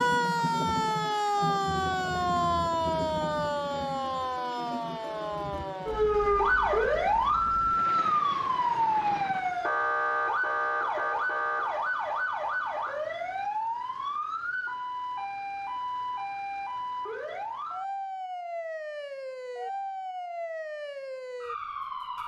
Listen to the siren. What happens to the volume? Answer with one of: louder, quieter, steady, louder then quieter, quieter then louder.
quieter.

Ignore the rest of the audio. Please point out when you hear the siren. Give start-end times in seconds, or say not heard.
0.0-22.2.